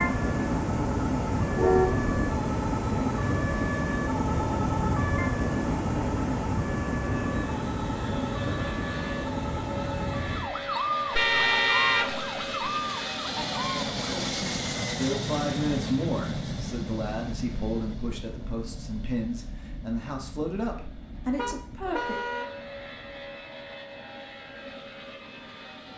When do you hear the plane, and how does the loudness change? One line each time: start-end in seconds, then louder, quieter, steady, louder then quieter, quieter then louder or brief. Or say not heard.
0.0-25.9 louder then quieter.